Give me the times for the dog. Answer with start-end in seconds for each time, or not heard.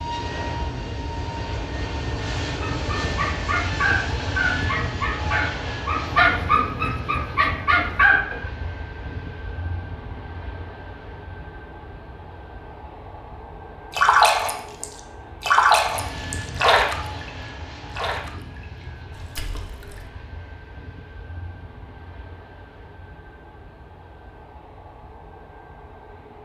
2.6-8.5.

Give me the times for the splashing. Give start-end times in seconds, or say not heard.
13.9-20.1.